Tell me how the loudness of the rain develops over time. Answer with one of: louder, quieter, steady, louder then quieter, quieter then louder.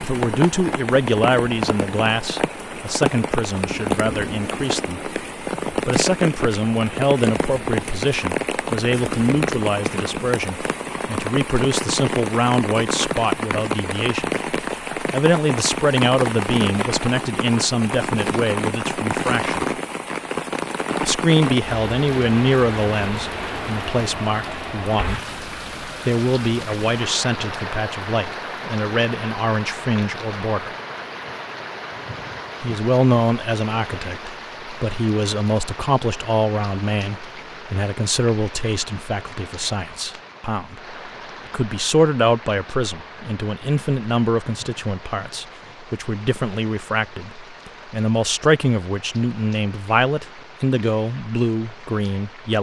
quieter.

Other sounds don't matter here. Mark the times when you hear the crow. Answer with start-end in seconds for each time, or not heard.
not heard.